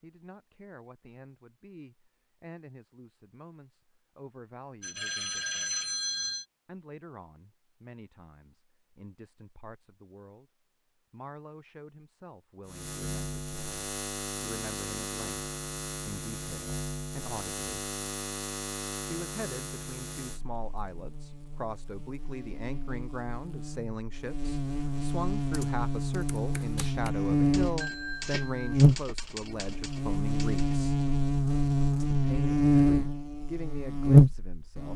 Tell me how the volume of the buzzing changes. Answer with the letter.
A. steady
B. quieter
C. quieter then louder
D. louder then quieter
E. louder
E.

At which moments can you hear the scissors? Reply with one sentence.
You can't hear the scissors here.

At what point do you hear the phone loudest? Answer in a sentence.
The volume of the phone peaks at 6 seconds.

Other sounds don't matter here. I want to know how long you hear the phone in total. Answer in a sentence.
You can hear the phone for 3 seconds altogether.